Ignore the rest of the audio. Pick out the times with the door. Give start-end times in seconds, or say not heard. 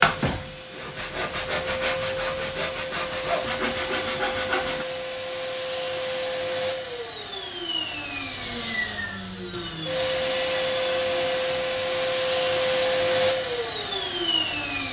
not heard.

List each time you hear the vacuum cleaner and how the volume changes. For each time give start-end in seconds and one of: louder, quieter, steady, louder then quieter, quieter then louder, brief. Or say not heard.
0.0-14.8 louder.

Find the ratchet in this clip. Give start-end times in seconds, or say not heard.
not heard.